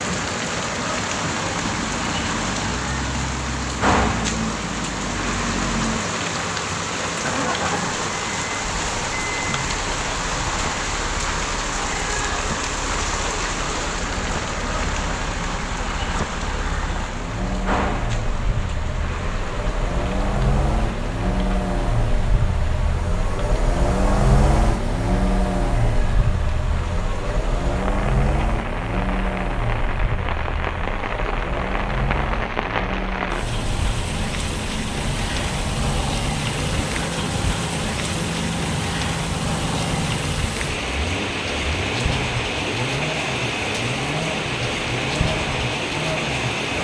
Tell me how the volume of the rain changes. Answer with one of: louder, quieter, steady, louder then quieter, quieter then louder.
quieter then louder.